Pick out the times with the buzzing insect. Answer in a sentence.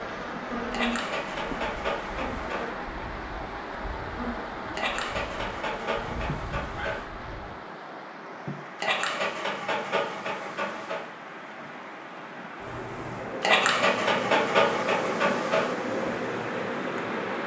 The buzzing insect can be heard from 0.0 to 7.5 s and from 12.6 to 17.4 s.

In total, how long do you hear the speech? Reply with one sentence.
The speech can't be heard in this clip.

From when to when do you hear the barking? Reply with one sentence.
The barking can be heard from 0.7 to 2.8 s, from 4.8 to 7.0 s, from 8.8 to 11.0 s and from 13.4 to 15.8 s.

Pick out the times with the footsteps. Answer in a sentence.
The footsteps can't be heard in this clip.